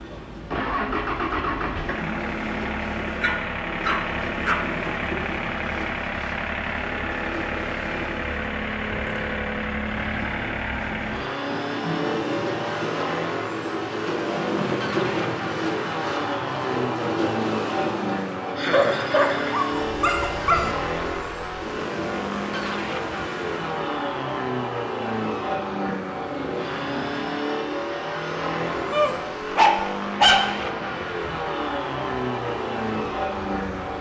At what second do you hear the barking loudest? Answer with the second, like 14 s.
30 s.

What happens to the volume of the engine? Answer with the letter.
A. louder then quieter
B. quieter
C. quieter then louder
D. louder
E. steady
E.